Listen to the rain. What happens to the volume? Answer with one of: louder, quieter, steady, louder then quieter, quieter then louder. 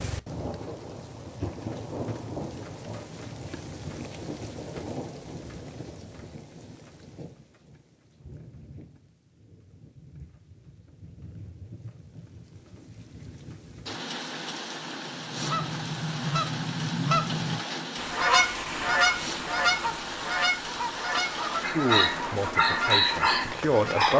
quieter then louder.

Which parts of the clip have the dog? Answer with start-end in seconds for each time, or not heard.
21.6-24.1.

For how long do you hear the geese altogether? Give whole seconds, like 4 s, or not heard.
9 s.